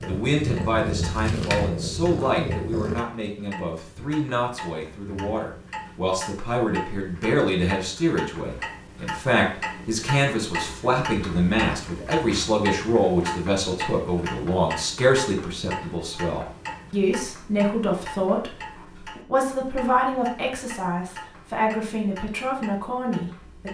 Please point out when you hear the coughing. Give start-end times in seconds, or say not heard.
not heard.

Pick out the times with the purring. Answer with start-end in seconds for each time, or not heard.
0.0-3.0.